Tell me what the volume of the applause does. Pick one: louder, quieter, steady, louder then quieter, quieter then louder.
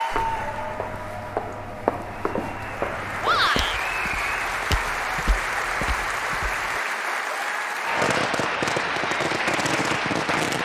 louder.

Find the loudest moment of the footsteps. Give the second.
2 s.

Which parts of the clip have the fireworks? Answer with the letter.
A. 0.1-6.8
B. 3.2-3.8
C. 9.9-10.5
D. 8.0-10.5
D.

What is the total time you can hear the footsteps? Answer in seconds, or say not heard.
7 s.